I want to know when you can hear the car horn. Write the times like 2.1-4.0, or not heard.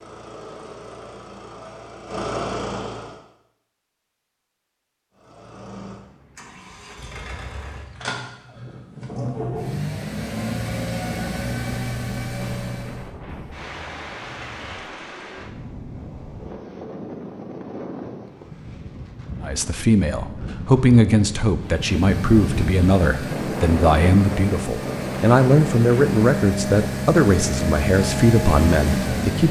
13.2-14.9.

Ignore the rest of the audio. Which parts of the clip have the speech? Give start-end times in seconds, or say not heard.
19.4-29.4.